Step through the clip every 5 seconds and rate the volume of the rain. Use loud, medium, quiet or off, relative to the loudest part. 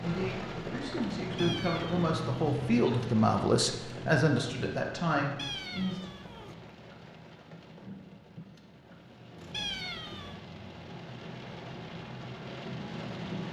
loud, medium, loud.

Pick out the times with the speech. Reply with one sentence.
The speech can be heard from 0.0 to 6.1 s.